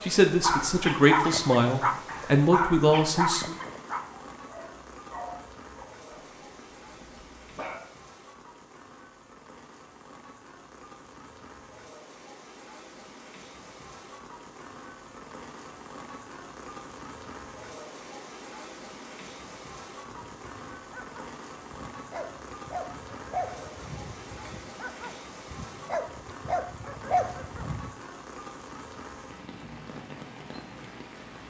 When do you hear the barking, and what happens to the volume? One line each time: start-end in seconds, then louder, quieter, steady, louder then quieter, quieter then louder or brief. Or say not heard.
0.4-7.8 quieter
20.1-27.9 louder.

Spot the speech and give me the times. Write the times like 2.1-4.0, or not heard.
0.0-3.5.